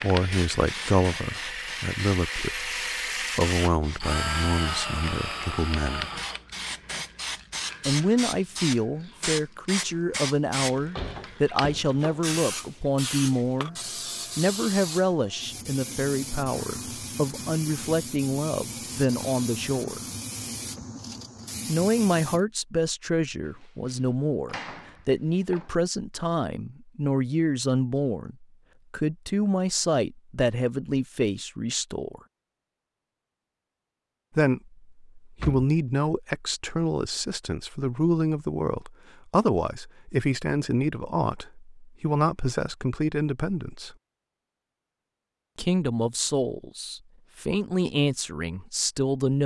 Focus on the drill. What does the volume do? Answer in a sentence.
The volume of the drill goes up, then down.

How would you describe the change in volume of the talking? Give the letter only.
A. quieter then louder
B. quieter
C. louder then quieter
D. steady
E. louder
D.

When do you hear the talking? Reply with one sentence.
The talking can be heard from 0.0 to 6.2 s, from 7.8 to 20.1 s, from 21.6 to 32.2 s, from 34.4 to 44.0 s and from 45.5 to 49.4 s.